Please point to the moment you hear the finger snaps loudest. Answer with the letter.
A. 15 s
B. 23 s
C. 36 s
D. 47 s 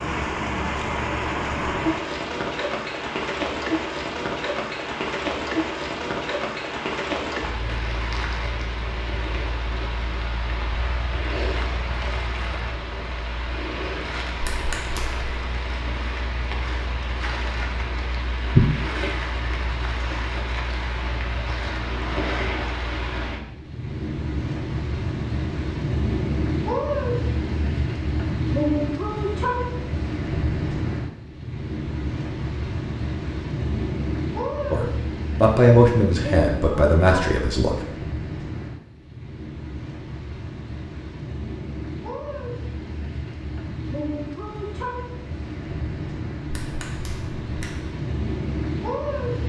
A.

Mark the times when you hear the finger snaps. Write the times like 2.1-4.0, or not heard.
14.4-15.3, 46.5-47.8.